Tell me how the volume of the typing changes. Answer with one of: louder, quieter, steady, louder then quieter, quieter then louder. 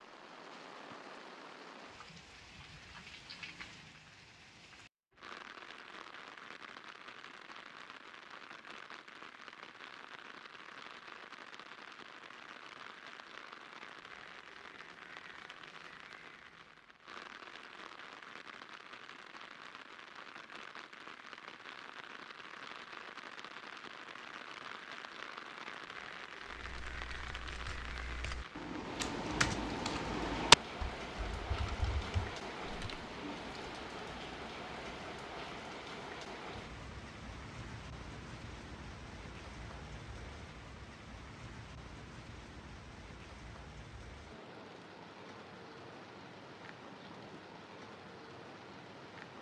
louder then quieter.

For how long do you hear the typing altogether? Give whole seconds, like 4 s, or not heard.
7 s.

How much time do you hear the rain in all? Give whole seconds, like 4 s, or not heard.
49 s.